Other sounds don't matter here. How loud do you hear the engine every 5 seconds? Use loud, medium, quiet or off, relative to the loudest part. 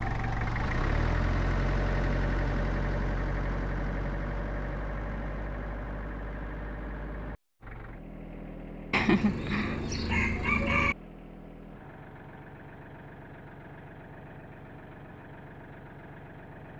loud, medium, quiet, quiet.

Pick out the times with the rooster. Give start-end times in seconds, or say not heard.
8.9-10.9.